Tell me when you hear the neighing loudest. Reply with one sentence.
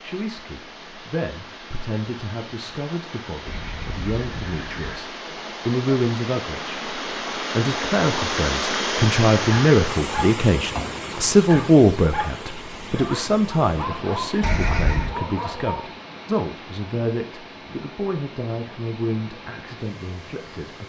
The volume of the neighing peaks at 15 seconds.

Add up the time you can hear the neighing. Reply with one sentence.
The neighing can be heard for 2 seconds in total.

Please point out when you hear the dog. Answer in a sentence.
The dog can be heard from 9.5 to 15.9 s.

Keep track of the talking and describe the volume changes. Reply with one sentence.
The loudness of the talking goes up, then down.